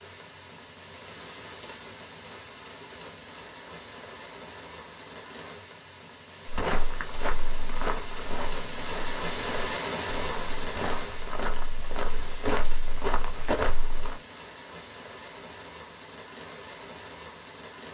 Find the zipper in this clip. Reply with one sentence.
You can't hear the zipper here.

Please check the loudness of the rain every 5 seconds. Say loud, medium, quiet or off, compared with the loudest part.
medium, loud, loud, medium.